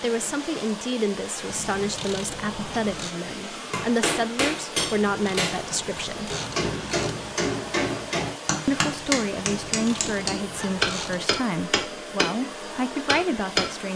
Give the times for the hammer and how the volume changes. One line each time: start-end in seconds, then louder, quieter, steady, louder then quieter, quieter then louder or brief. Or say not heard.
3.7-13.7 steady.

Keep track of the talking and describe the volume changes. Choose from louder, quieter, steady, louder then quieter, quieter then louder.
steady.